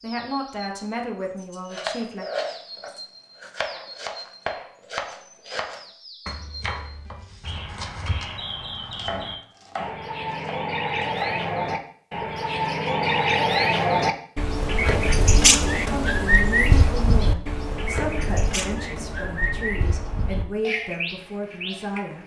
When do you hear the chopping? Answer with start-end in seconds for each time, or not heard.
1.4-8.2, 8.9-11.4.